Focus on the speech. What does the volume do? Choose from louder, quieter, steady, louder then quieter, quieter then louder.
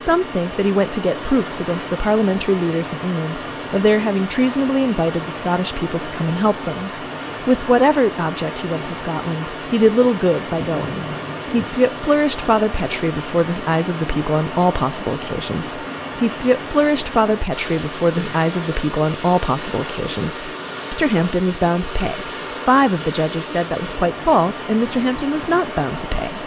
steady.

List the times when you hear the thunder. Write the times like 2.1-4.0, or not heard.
10.6-11.8.